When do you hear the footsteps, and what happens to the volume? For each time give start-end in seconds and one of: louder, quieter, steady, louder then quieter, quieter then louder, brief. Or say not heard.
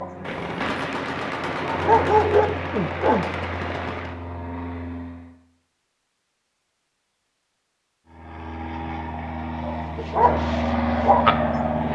not heard.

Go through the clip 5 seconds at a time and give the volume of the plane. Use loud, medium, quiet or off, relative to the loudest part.
medium, medium, loud.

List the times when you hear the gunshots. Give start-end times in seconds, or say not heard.
0.2-4.2.